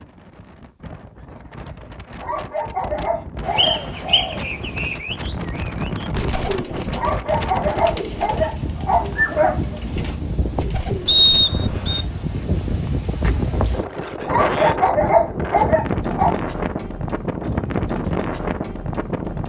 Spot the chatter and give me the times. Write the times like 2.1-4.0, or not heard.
not heard.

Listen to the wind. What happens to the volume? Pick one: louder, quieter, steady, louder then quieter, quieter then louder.
louder.